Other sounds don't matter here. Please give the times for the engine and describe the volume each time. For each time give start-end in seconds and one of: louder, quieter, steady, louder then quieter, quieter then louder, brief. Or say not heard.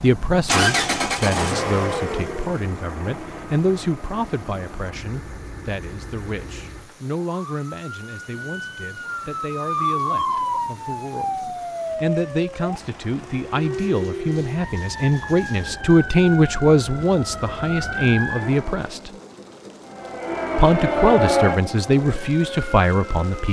0.0-7.0 quieter.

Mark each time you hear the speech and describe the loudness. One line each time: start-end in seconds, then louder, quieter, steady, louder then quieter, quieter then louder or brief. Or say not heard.
0.0-19.1 quieter then louder
20.6-23.4 brief.